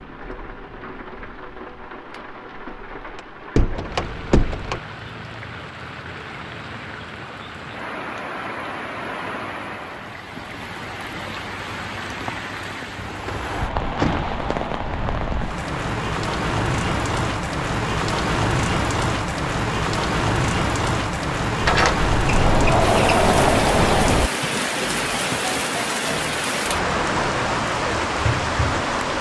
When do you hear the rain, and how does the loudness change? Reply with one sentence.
The rain can be heard from 0.0 to 29.1 s, getting louder.